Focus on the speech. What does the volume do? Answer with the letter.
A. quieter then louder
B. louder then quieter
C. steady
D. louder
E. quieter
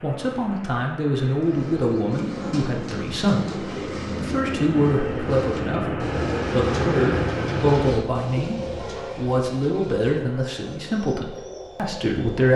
C.